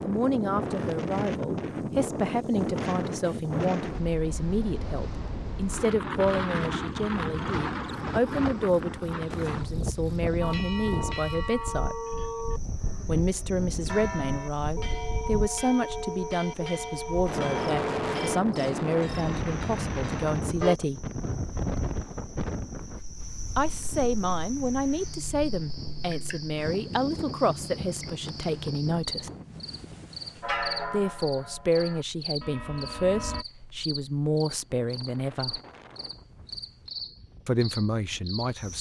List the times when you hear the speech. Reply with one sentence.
The speech can be heard from 0.0 to 11.9 s, from 13.1 to 21.1 s, from 23.6 to 29.3 s, from 30.9 to 35.6 s and from 37.5 to 38.7 s.